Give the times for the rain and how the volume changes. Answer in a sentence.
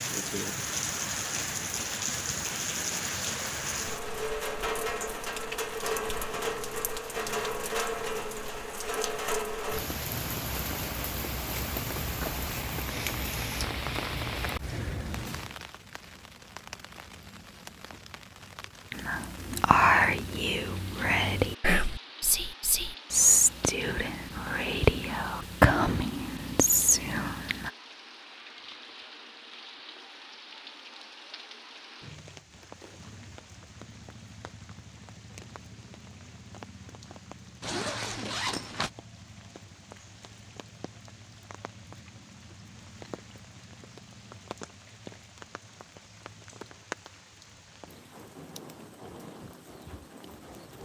You can hear the rain from 0.0 to 50.8 s, getting quieter.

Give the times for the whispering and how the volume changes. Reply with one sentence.
The whispering can be heard from 18.9 to 27.7 s, at a steady volume.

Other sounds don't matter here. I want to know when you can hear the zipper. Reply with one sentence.
The zipper can be heard from 37.6 to 38.9 s.